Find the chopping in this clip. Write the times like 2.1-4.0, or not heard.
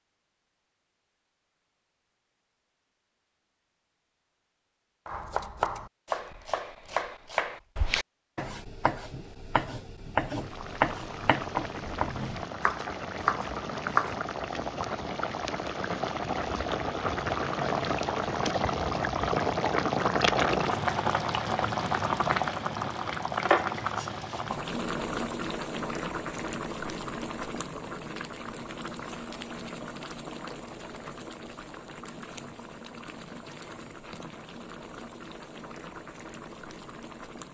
5.0-14.2.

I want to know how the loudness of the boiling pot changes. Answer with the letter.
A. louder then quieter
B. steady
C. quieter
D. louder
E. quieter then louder
A.